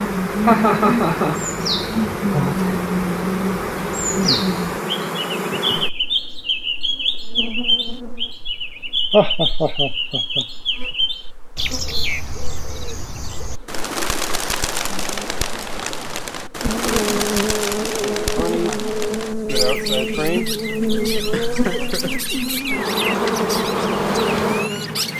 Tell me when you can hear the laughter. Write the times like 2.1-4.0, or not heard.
0.5-1.4, 9.1-10.4, 21.3-22.1.